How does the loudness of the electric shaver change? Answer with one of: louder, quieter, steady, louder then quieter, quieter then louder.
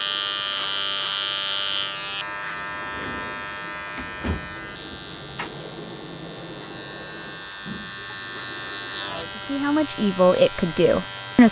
quieter then louder.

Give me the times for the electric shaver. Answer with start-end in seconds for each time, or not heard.
0.0-11.4.